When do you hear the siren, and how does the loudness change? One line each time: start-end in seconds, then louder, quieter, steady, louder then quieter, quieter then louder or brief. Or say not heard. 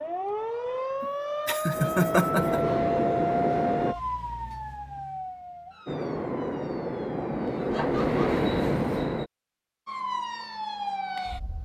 0.0-7.7 quieter
9.8-11.6 brief.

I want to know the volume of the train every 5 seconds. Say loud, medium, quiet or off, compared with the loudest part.
loud, loud, off.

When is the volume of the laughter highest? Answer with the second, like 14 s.
2 s.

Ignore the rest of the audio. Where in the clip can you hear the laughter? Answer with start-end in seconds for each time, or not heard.
1.0-2.6, 7.7-8.3.